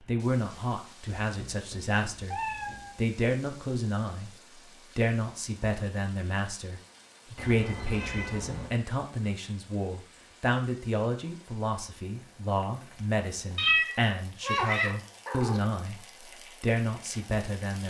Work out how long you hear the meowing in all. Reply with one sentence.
The meowing can be heard for 5 seconds in total.